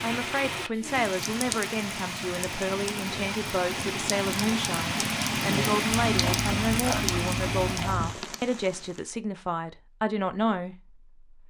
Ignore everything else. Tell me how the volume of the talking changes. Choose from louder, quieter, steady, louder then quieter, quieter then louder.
steady.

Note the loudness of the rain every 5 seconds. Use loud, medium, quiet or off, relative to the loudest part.
loud, loud, off.